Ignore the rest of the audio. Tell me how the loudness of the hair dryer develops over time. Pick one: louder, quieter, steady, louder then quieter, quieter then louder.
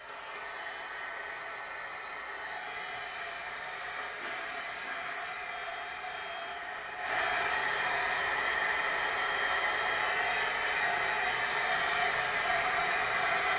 louder.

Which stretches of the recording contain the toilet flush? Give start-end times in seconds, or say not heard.
4.0-5.3.